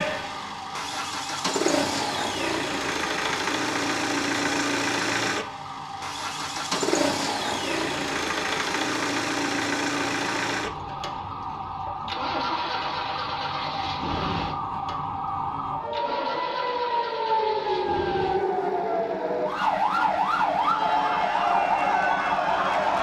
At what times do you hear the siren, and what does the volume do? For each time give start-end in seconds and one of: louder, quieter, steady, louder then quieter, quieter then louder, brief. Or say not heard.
0.0-22.9 louder.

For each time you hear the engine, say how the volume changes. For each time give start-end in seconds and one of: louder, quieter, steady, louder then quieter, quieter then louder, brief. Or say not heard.
0.0-22.9 quieter.